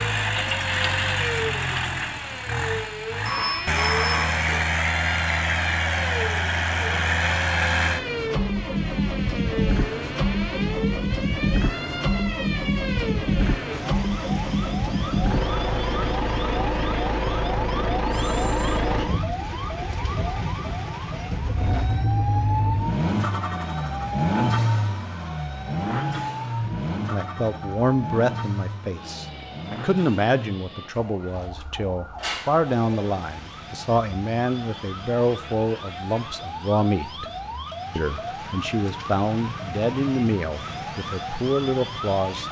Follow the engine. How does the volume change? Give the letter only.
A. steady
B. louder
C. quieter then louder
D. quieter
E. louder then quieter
D.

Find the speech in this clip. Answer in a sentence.
The speech can be heard from 27.1 to 37.2 s and from 38.0 to 42.4 s.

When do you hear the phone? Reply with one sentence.
The phone can be heard from 3.2 to 4.6 s, from 18.1 to 18.8 s and from 32.1 to 33.1 s.